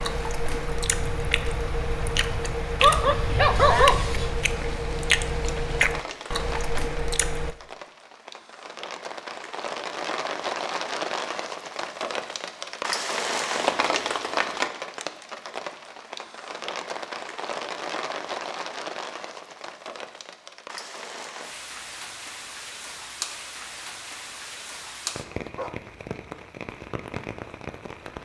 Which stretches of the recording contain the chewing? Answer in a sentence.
The chewing can be heard from 0.0 to 7.5 s.